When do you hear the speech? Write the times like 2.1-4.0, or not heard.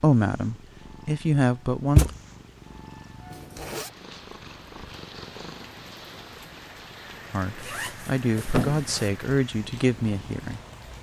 0.0-2.1, 7.3-10.6.